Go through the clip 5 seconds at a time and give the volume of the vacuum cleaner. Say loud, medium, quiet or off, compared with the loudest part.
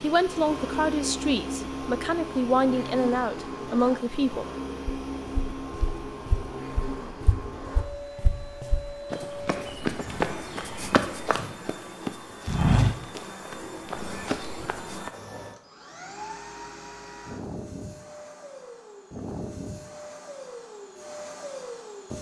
loud, loud, medium, medium, medium.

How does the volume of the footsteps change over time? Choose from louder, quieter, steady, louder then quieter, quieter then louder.
louder then quieter.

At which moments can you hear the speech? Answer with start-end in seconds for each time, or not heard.
0.0-4.5.